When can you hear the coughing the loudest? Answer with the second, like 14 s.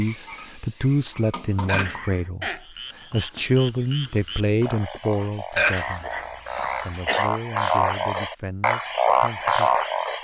6 s.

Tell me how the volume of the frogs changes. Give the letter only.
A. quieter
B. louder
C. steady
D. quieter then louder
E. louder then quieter
B.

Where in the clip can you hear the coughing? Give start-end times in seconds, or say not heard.
1.6-2.2, 5.5-7.3.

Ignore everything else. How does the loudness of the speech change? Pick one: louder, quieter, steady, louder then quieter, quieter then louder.
quieter.